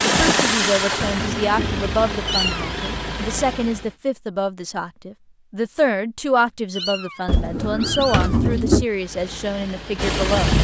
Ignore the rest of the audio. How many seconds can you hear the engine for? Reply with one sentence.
You can hear the engine for 6 seconds altogether.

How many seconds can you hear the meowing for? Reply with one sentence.
You can hear the meowing for 2 seconds altogether.